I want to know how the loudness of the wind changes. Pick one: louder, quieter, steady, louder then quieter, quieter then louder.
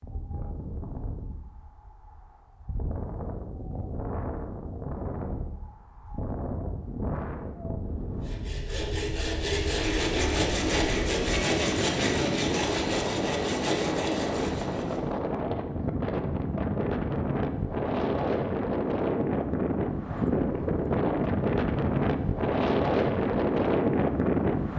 louder.